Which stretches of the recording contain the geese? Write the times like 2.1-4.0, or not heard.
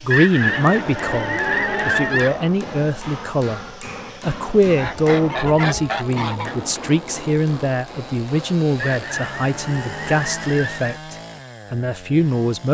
0.1-2.4, 4.8-6.5, 8.8-11.0.